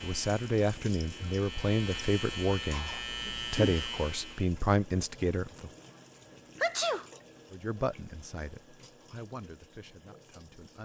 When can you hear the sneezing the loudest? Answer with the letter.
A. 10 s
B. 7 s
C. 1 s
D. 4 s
B.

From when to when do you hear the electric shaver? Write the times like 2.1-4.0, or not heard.
0.0-4.5.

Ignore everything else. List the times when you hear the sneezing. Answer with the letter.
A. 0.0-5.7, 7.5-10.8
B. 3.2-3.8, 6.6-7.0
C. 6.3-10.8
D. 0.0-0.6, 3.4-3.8
B.